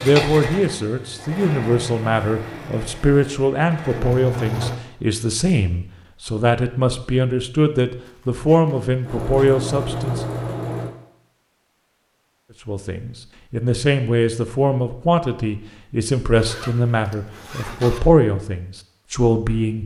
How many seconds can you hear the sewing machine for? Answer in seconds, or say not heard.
7 s.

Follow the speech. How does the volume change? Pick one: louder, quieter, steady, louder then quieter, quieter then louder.
steady.